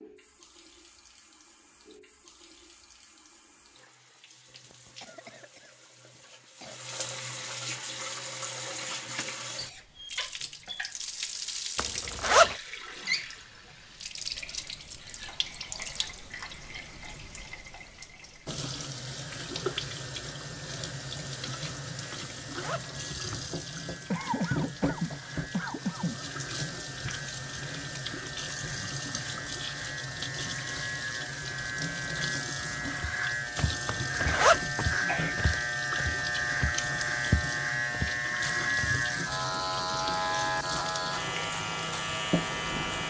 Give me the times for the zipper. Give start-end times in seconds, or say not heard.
11.8-12.6, 22.1-23.4, 33.9-34.6.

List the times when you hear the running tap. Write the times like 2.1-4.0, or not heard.
0.0-43.0.